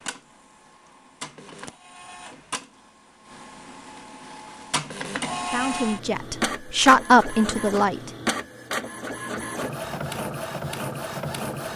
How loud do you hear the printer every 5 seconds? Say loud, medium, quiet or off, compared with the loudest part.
medium, loud, loud.